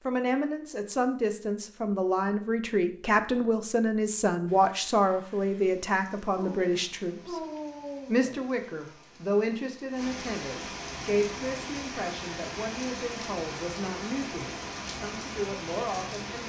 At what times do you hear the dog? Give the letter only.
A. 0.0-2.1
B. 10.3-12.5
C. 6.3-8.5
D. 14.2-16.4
C.